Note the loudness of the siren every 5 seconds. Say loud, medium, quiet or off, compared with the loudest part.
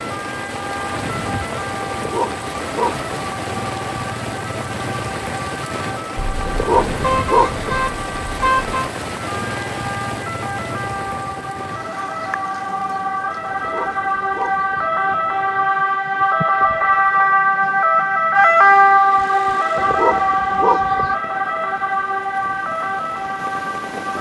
quiet, quiet, medium, loud, medium.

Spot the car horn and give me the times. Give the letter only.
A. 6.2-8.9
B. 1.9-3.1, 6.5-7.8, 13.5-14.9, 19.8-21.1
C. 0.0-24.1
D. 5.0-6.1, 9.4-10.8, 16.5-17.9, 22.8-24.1
A.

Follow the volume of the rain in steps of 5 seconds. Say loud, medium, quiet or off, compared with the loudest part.
loud, loud, medium, quiet, medium.